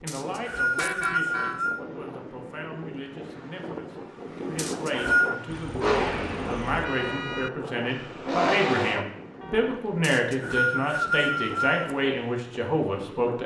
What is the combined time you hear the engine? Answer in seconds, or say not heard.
3 s.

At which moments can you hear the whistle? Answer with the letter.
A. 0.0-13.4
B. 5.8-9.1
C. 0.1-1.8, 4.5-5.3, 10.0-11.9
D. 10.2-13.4
C.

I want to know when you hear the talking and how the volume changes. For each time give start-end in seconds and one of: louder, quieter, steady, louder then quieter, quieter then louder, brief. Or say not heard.
0.0-13.4 louder.